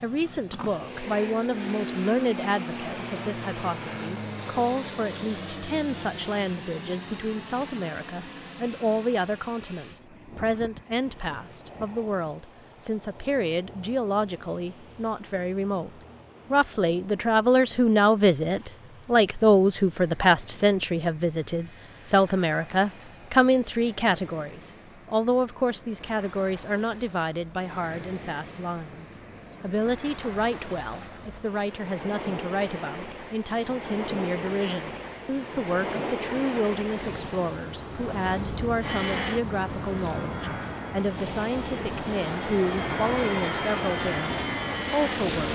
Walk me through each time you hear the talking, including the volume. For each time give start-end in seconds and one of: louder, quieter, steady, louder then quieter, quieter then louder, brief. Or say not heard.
0.0-15.9 steady
16.5-45.5 quieter.